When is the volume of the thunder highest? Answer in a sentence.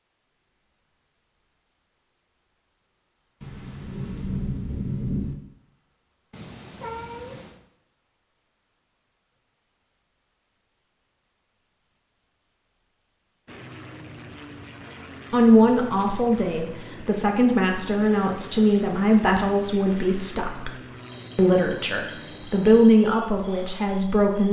The volume of the thunder peaks at 5 seconds.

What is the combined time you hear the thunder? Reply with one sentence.
The thunder can be heard for 2 seconds in total.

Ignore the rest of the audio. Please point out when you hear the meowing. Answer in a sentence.
You can hear the meowing from 6.3 to 7.6 s.